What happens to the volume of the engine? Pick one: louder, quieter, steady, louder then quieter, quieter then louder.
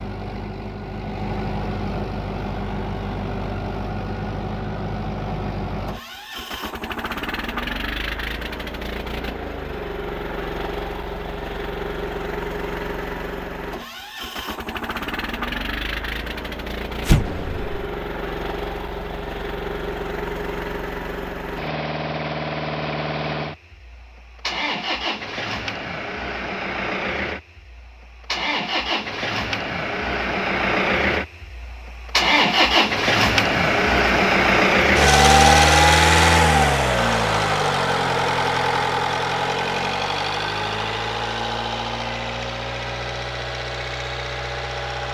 louder.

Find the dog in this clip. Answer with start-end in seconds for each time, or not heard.
not heard.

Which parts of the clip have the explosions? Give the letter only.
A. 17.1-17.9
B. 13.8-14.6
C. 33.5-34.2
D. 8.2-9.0
A.